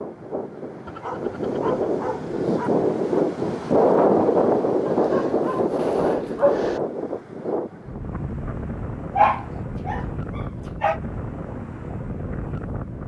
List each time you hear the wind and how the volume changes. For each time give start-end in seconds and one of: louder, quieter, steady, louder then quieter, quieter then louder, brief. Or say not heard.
0.0-13.0 louder then quieter.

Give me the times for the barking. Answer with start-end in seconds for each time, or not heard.
0.8-2.7, 4.8-6.8, 9.2-11.0.